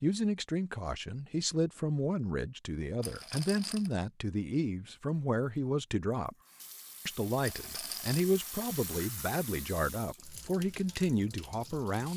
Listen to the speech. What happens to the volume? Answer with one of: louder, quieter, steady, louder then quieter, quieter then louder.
steady.